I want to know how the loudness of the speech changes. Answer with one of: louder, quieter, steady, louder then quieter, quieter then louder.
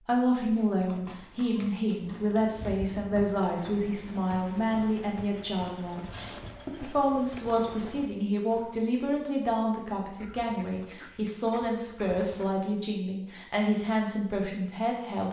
steady.